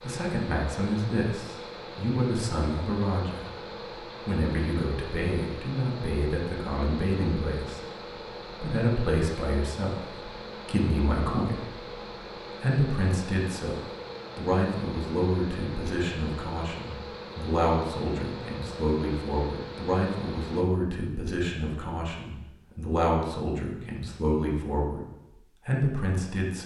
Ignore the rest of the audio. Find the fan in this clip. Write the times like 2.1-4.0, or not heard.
0.0-20.6.